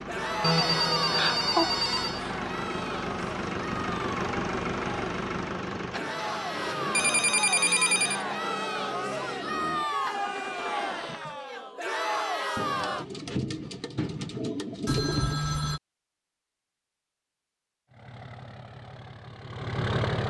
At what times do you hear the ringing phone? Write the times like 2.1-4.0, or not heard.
0.4-2.2, 6.9-8.2, 14.8-15.8.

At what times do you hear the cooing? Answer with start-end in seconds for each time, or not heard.
12.6-15.4.